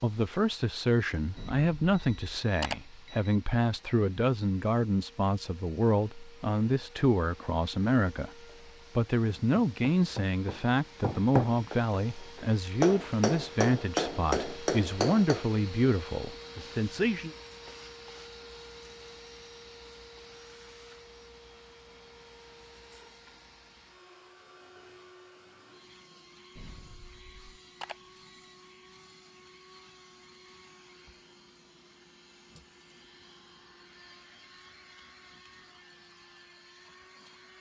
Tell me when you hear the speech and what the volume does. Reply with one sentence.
You can hear the speech from 0.0 to 17.3 s, at a steady volume.